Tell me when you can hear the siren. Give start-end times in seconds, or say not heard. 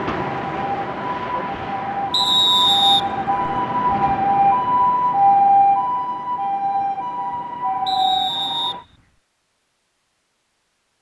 0.0-8.8.